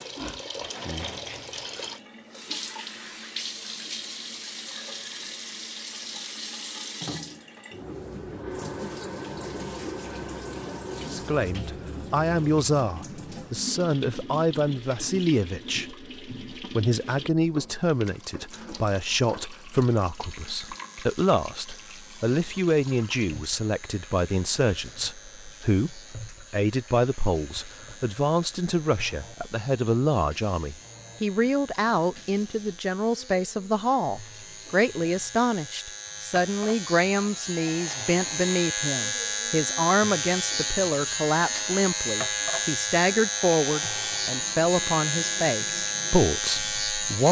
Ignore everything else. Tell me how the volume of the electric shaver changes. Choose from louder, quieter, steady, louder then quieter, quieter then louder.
louder.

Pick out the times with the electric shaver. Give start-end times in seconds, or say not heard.
20.1-47.2.